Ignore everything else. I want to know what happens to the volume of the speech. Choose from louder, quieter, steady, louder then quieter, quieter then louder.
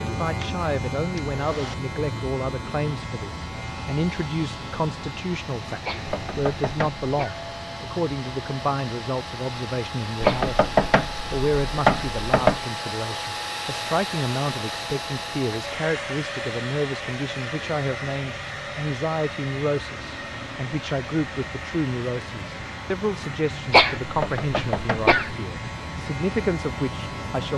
steady.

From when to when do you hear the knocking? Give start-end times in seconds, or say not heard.
6.0-7.0, 10.2-12.6, 24.1-25.1.